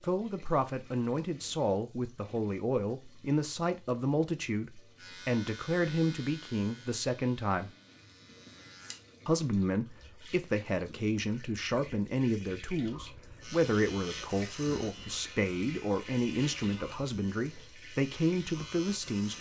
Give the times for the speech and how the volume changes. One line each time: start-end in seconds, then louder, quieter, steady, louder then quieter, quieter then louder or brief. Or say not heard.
0.0-7.7 steady
9.2-19.3 steady.